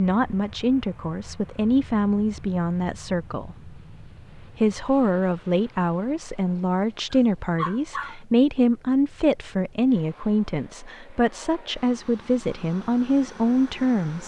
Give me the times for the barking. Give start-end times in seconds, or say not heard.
7.1-8.2.